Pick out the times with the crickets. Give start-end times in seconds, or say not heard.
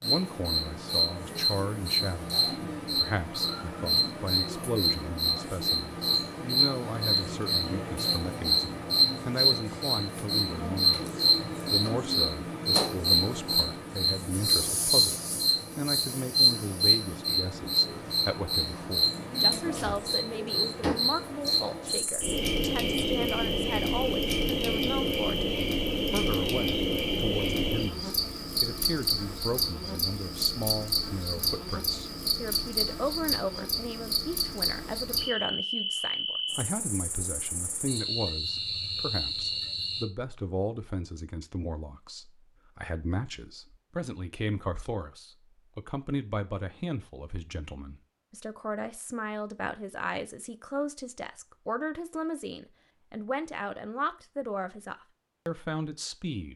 0.0-40.0.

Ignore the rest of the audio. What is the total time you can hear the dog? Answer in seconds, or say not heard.
not heard.